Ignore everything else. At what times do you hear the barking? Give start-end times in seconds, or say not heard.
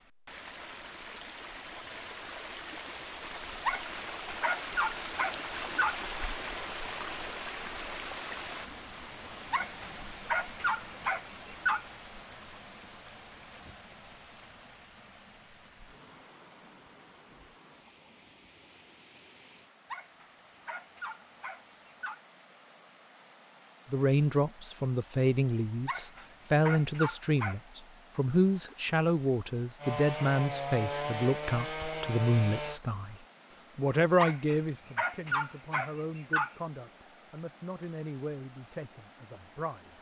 3.6-6.0, 9.5-11.8, 19.9-22.2, 25.9-27.6, 34.1-36.5.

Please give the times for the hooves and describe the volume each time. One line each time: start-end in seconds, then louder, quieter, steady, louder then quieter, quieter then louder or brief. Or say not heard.
not heard.